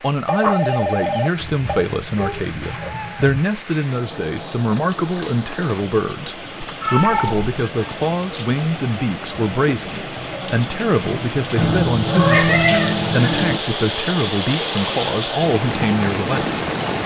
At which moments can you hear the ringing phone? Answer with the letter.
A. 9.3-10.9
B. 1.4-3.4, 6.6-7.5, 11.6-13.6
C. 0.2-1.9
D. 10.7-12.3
C.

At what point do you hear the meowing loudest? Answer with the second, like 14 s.
12 s.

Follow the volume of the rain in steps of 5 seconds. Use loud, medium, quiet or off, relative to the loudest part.
quiet, medium, loud, loud.